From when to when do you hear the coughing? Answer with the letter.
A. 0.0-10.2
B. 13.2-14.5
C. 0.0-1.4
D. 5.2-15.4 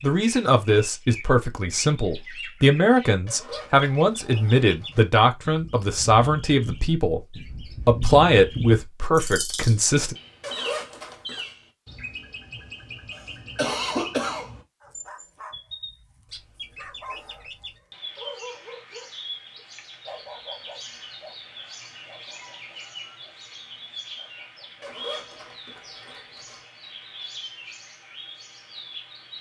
B.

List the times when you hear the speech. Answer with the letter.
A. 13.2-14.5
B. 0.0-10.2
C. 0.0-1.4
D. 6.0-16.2
B.